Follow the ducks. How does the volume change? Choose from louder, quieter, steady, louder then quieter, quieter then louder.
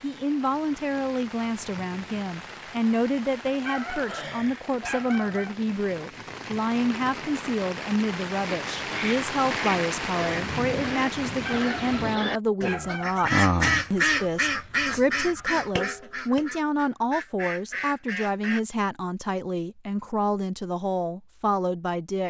louder then quieter.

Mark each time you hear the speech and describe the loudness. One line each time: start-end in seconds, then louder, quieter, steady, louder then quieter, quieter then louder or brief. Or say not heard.
0.0-22.2 steady.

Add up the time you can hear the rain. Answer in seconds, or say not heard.
12 s.